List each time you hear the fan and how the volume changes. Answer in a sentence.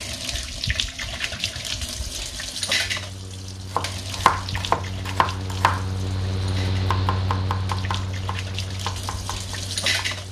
You can hear the fan from 2.6 to 10.2 s, getting louder then quieter.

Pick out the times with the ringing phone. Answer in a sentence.
You can't hear the ringing phone here.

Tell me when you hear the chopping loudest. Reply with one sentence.
The loudest moment of the chopping is at 4 seconds.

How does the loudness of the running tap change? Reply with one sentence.
The loudness of the running tap goes down, then up.